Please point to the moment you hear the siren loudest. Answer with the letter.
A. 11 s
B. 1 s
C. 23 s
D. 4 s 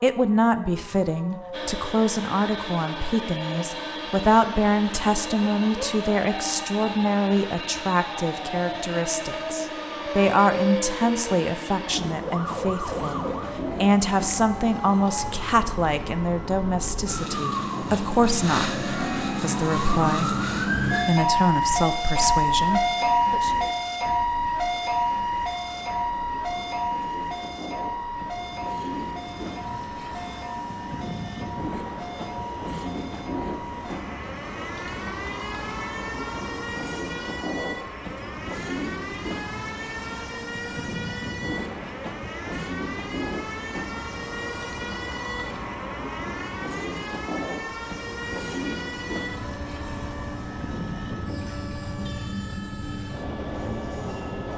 C.